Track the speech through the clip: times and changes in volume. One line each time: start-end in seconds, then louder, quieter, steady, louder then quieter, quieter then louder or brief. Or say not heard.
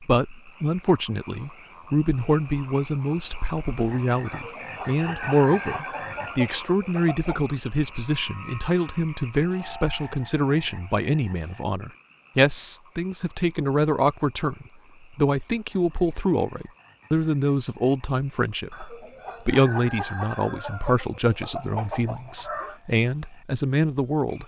0.0-24.4 steady.